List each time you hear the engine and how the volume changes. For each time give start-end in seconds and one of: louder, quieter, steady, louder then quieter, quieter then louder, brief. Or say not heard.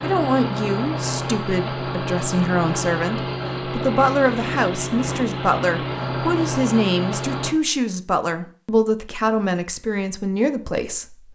0.0-7.5 steady.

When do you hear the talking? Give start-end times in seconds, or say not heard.
0.0-11.3.